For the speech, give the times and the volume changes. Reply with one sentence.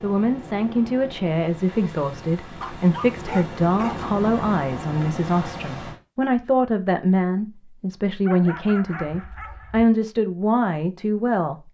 The speech can be heard from 0.0 to 11.6 s, at a steady volume.